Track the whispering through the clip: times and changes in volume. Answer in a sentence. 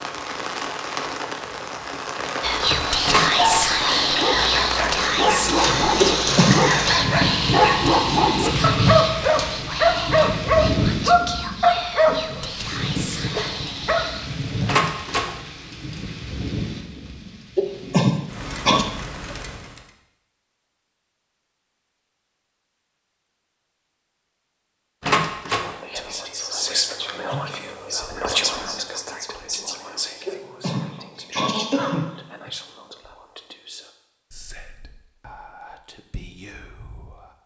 The whispering can be heard from 2.4 to 14.3 s, getting quieter; and from 25.5 to 37.4 s, getting quieter.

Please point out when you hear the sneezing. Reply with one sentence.
The sneezing can be heard from 6.0 to 6.7 s, from 17.6 to 18.9 s and from 30.2 to 32.1 s.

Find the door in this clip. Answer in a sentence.
You can hear the door from 3.0 to 3.6 s, from 14.7 to 15.3 s and from 25.0 to 25.7 s.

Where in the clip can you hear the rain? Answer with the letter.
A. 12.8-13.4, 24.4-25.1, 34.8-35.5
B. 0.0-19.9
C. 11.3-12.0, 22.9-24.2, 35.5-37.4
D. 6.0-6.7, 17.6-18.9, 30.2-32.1
B.